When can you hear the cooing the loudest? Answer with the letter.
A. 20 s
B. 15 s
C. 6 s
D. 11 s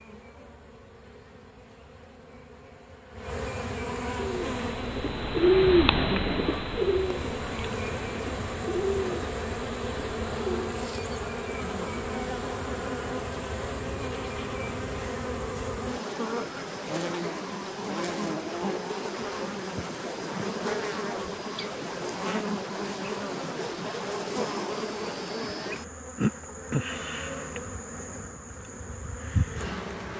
C.